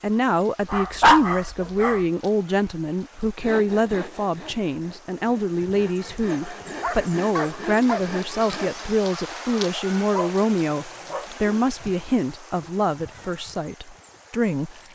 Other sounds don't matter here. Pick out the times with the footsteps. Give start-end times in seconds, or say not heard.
not heard.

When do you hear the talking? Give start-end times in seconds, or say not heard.
0.0-14.9.